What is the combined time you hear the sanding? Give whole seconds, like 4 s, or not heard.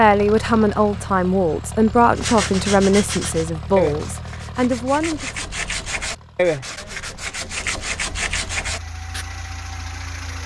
7 s.